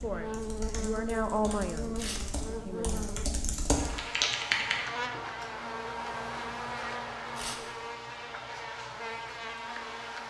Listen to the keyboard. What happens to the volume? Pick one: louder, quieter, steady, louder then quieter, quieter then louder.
louder.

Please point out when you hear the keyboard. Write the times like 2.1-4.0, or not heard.
0.0-4.9.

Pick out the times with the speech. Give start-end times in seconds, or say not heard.
0.0-3.1.